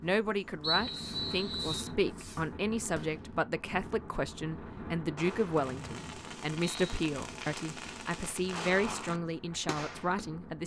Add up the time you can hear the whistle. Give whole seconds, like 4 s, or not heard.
3 s.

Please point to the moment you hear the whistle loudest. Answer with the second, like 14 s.
1 s.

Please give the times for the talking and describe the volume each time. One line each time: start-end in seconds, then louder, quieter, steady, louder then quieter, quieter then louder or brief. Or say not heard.
0.0-10.6 steady.